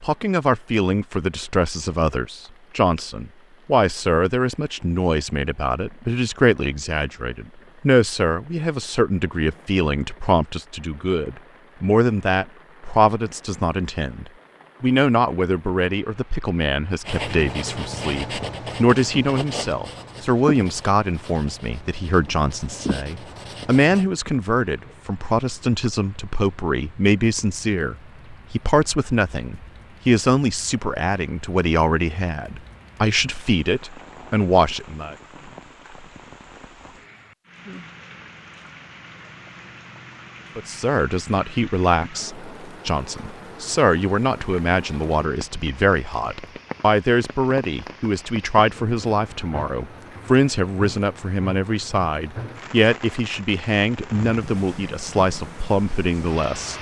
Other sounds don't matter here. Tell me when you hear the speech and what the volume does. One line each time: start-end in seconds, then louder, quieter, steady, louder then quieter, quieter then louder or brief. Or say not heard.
0.0-35.1 steady
40.5-56.7 steady.